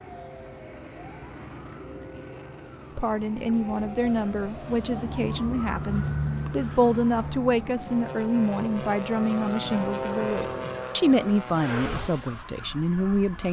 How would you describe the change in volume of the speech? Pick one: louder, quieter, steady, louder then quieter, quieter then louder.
steady.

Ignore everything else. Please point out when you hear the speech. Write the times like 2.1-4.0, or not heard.
3.0-13.4.